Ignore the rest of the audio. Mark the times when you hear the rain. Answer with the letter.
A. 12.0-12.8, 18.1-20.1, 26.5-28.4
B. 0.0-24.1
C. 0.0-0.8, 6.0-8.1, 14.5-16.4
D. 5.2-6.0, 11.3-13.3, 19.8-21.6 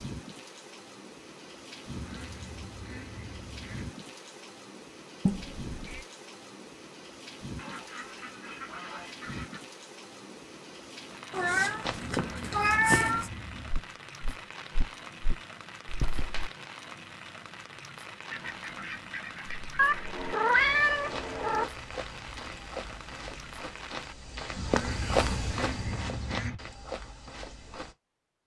B.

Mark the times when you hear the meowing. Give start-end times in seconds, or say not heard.
5.2-6.0, 11.3-13.3, 19.8-21.6.